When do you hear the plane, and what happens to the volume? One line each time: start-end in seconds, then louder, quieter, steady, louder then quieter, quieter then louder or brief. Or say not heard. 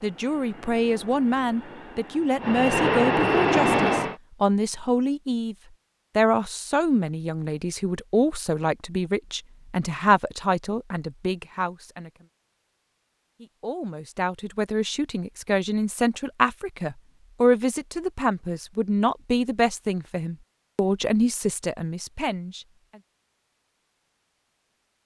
0.0-4.2 louder.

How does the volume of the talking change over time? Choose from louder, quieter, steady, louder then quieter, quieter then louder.
steady.